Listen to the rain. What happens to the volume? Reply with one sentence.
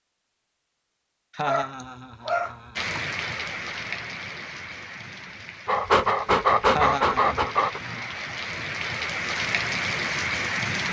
The loudness of the rain goes down, then up.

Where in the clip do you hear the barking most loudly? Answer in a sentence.
The loudest moment of the barking is at 7 seconds.